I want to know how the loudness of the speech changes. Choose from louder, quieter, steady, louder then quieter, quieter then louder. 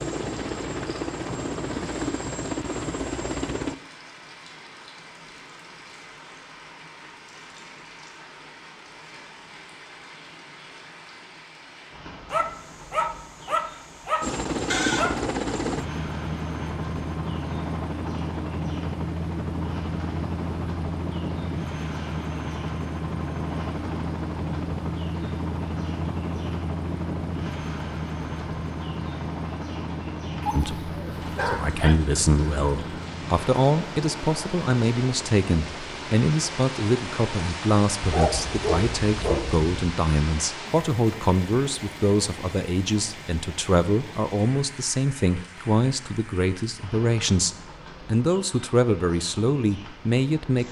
steady.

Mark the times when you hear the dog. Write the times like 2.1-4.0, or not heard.
12.3-15.2, 30.4-31.9, 38.0-39.7.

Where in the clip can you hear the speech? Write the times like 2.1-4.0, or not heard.
30.5-50.6.